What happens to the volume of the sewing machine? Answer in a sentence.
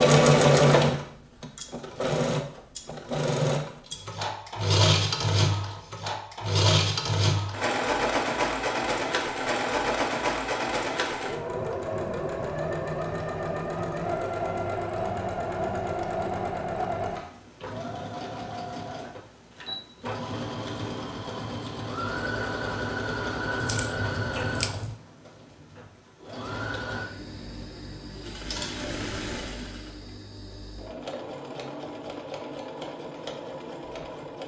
The volume of the sewing machine goes down.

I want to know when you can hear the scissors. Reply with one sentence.
You can hear the scissors from 23.6 to 24.9 s.